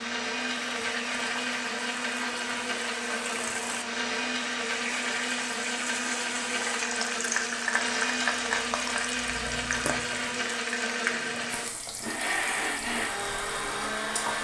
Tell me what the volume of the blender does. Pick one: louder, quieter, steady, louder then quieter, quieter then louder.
steady.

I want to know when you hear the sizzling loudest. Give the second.
8 s.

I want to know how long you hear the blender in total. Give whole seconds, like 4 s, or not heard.
14 s.